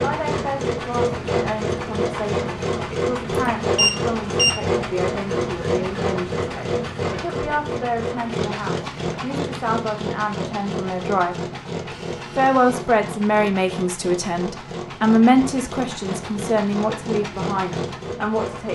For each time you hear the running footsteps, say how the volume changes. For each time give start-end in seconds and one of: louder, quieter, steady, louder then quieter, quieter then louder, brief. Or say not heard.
not heard.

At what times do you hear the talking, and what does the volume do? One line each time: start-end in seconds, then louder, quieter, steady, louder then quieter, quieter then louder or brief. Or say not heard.
0.0-18.7 louder.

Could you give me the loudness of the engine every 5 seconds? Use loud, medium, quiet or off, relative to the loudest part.
loud, loud, medium, medium.